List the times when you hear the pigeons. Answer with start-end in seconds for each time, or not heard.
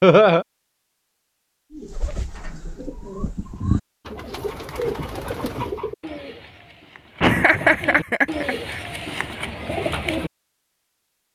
1.7-10.3.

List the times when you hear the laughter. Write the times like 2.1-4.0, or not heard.
0.0-0.5, 7.2-8.8.